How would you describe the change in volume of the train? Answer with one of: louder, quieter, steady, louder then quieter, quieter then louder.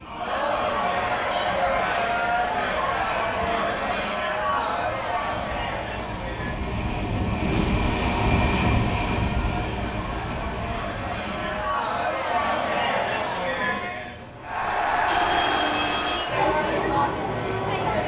louder then quieter.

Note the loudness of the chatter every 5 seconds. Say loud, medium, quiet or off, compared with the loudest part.
loud, medium, loud, loud.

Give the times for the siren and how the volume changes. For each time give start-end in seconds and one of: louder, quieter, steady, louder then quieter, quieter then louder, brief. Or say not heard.
not heard.